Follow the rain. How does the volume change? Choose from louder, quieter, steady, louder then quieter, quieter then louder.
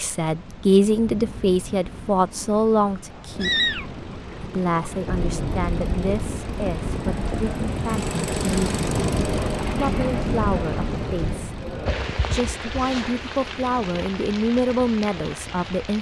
louder then quieter.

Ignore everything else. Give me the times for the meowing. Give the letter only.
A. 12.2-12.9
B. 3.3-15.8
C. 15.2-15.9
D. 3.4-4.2
D.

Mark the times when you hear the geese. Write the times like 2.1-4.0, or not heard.
not heard.